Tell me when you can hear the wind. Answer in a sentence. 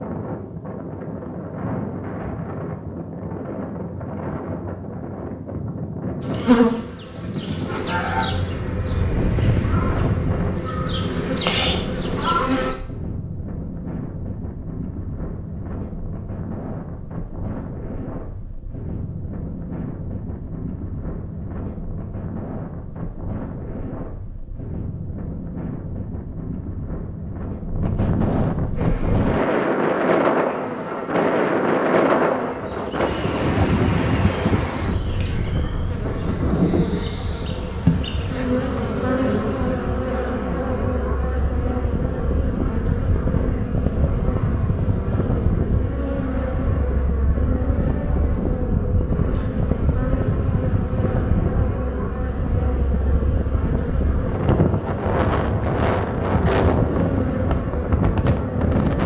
You can hear the wind from 0.0 to 59.0 s.